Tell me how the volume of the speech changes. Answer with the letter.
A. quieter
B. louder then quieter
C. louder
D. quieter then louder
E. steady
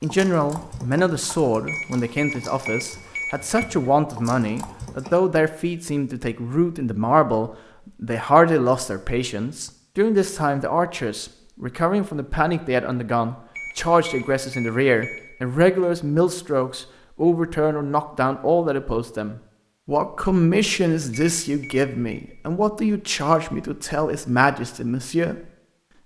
E.